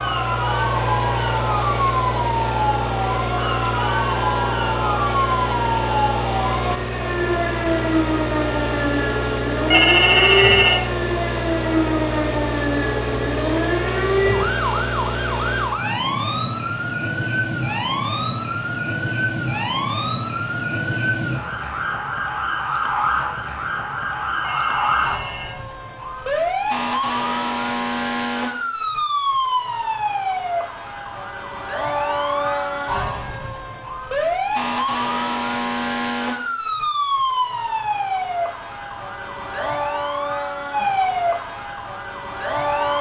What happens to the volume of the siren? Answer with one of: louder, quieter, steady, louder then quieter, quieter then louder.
steady.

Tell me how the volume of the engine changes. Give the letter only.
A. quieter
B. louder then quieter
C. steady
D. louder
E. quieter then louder
C.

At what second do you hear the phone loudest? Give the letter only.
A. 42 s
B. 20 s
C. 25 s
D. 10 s
D.